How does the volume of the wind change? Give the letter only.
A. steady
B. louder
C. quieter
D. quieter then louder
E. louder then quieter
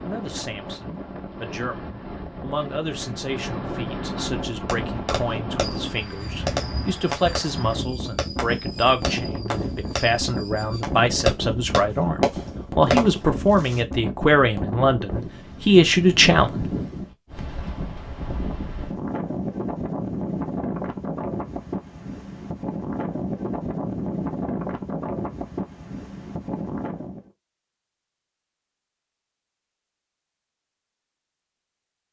A.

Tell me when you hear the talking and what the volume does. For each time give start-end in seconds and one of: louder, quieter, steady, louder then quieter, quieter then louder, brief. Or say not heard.
0.0-16.6 louder.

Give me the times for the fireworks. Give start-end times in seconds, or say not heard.
4.7-13.8.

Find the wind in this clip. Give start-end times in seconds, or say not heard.
0.0-27.3.